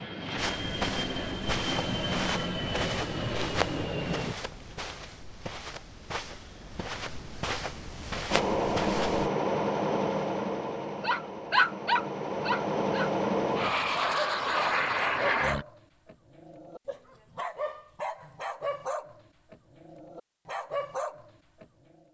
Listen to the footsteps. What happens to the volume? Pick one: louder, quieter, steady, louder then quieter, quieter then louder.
quieter then louder.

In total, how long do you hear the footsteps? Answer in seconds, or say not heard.
9 s.